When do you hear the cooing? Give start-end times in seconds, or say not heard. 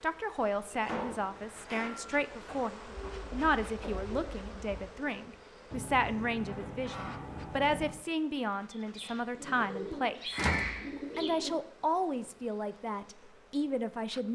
2.9-4.8, 8.7-11.6.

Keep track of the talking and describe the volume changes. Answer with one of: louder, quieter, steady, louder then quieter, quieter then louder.
steady.